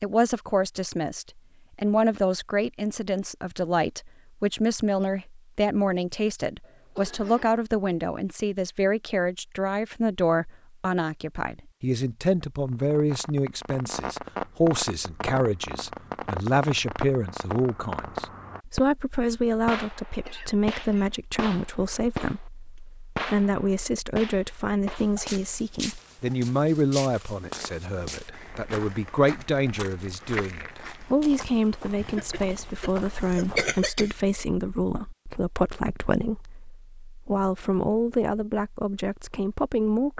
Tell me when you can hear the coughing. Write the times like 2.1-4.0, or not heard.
6.6-7.6, 20.2-21.1, 31.9-34.1.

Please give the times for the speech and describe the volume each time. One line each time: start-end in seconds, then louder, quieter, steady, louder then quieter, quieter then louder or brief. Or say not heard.
0.0-40.1 steady.